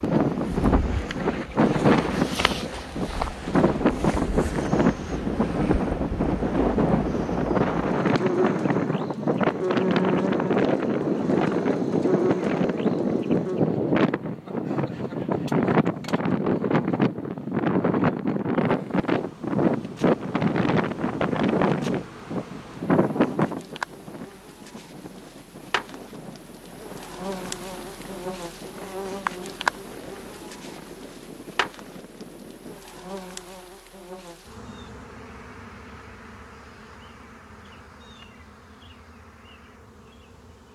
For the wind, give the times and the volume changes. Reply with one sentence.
You can hear the wind from 0.0 to 33.1 s, getting quieter.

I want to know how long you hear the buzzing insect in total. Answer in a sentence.
The buzzing insect can be heard for 36 seconds in total.